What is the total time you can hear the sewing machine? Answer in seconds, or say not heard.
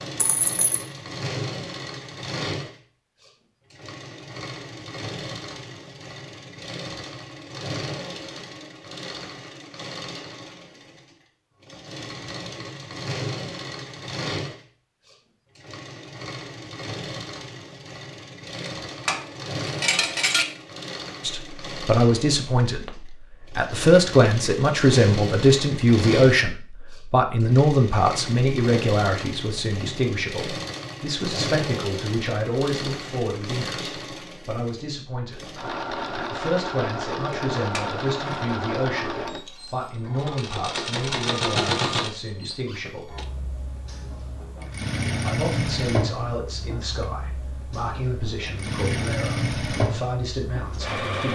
51 s.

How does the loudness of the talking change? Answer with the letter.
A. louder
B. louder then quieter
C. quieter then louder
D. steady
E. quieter
E.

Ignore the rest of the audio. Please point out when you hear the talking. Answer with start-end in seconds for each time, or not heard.
21.2-43.1, 45.2-51.3.